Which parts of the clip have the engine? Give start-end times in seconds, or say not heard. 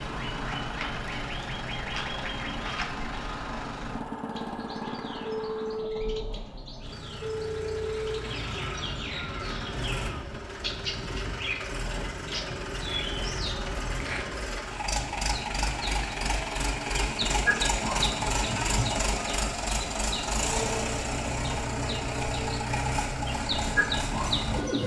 0.0-24.8.